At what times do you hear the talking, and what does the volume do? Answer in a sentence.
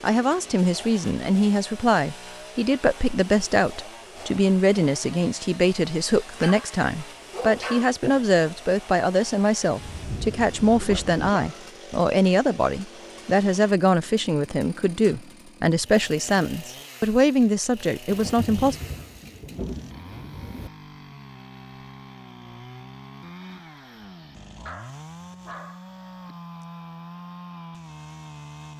You can hear the talking from 0.0 to 18.8 s, at a steady volume.